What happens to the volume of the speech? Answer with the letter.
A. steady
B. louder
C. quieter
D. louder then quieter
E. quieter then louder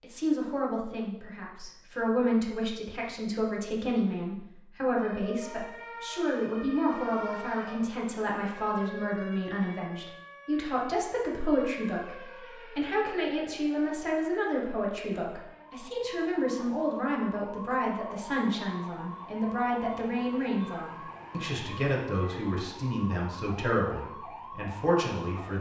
A.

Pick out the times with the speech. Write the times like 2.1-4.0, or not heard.
0.0-25.5.